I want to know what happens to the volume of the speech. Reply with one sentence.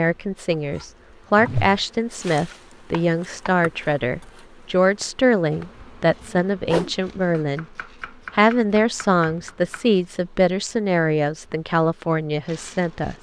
The loudness of the speech stays about the same.